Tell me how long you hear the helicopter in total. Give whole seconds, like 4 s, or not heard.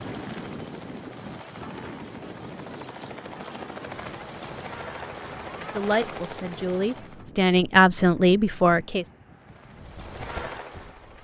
9 s.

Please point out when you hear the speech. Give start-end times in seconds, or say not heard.
5.6-9.1.